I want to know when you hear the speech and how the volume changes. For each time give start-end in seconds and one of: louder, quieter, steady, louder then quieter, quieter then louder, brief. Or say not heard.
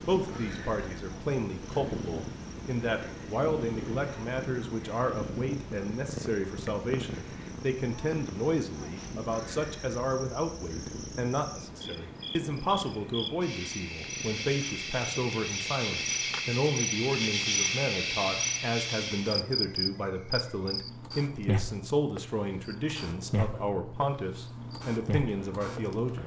0.0-26.2 steady.